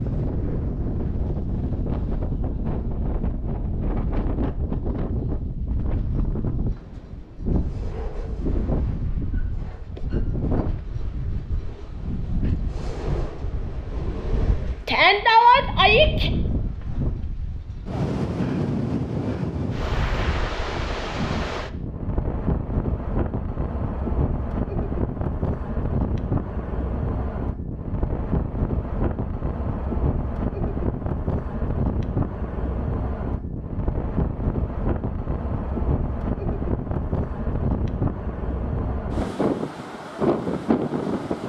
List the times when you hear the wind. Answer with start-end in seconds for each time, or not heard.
0.0-41.4.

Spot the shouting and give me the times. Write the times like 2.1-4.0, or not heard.
14.8-16.3.